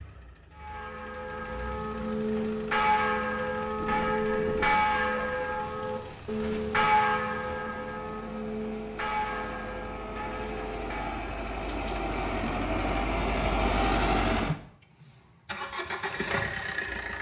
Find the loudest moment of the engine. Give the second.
14 s.